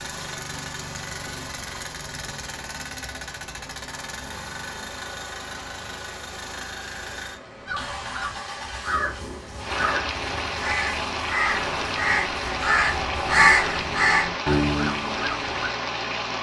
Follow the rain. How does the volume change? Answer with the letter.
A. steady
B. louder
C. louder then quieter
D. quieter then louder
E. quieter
B.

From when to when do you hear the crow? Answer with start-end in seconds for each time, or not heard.
7.7-15.6.